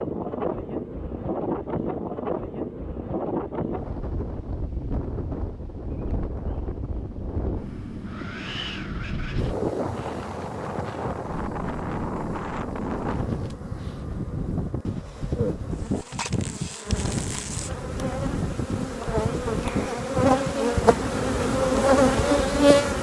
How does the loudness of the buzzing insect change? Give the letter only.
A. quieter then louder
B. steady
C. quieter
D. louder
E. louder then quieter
D.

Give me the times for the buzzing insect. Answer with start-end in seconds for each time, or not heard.
9.3-22.9.